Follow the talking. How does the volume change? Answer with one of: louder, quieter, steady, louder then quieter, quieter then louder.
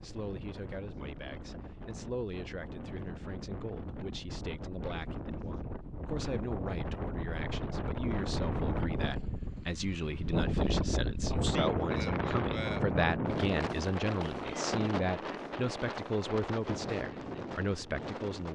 louder.